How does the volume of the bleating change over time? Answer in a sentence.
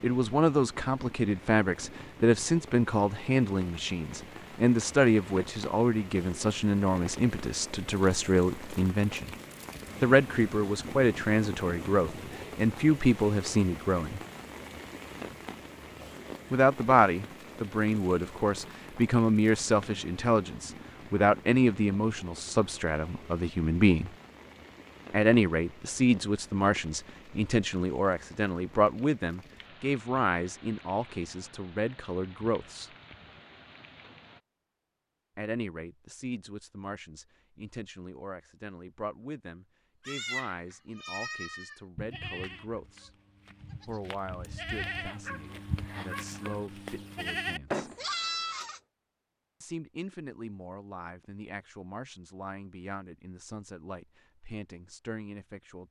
The volume of the bleating goes down, then up.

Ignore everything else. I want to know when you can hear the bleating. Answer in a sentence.
The bleating can be heard from 40.0 to 48.8 s.